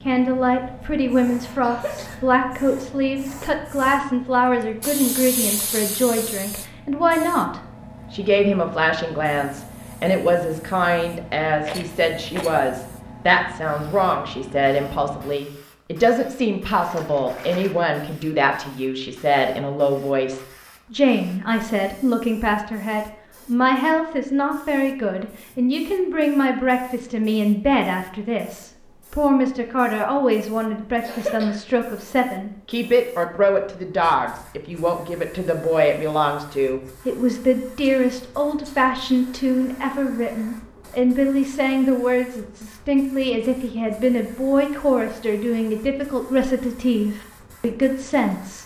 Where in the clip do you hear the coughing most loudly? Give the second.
31 s.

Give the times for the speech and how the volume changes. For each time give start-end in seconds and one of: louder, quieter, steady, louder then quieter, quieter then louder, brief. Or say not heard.
0.1-48.6 steady.